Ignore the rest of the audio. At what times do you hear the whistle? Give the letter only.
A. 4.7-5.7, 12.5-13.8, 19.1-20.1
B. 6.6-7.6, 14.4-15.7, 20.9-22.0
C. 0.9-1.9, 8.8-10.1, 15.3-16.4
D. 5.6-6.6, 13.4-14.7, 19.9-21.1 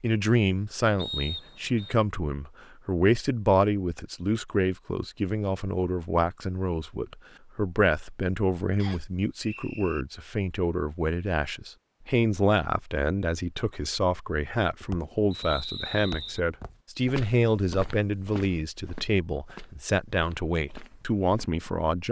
C.